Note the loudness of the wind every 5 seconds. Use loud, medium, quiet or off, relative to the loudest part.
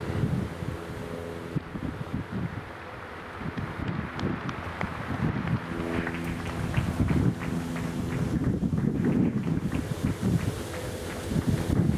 medium, loud, loud.